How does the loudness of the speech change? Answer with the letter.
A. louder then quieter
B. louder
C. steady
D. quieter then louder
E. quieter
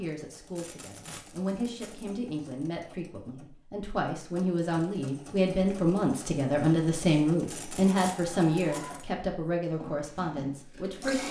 A.